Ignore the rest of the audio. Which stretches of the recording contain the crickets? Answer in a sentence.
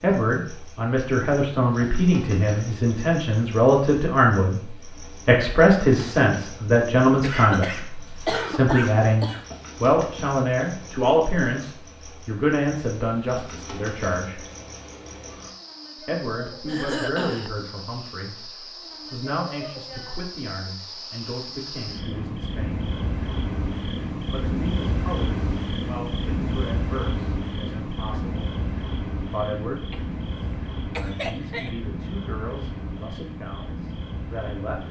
The crickets can be heard from 0.0 to 34.8 s.